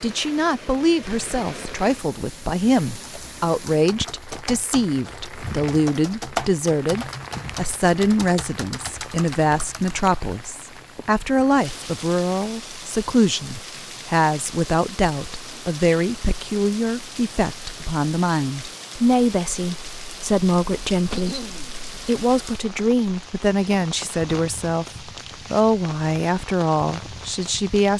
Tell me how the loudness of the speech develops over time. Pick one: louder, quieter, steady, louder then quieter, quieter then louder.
steady.